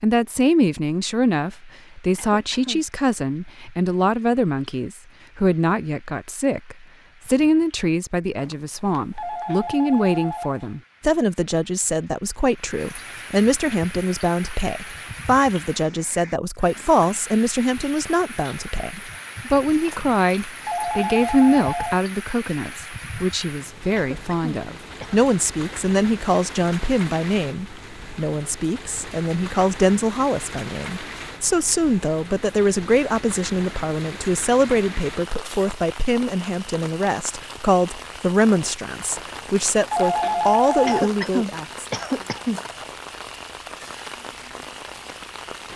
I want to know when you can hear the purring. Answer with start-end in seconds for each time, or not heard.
not heard.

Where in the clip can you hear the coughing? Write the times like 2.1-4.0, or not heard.
2.1-2.9, 23.9-25.2, 40.9-42.6.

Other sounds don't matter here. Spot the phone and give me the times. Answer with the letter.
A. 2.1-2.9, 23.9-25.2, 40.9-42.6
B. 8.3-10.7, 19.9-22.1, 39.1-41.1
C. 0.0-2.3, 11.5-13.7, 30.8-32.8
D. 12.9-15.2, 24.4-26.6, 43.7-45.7
B.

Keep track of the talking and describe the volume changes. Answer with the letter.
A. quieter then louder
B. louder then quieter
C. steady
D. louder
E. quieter
C.